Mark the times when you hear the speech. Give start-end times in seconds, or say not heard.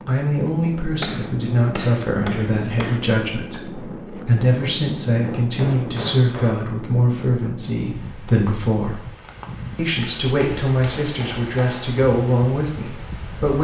0.1-9.0, 9.8-13.5.